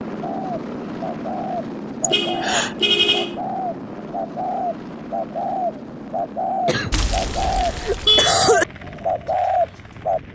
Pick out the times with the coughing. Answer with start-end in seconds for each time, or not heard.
2.0-2.8, 6.7-8.7.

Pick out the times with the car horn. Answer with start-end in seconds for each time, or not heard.
2.1-3.4, 6.9-8.3.